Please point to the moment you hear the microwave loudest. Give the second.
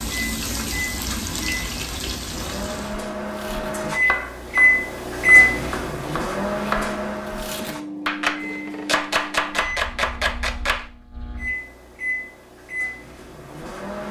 5 s.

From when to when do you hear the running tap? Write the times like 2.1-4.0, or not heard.
0.0-3.0.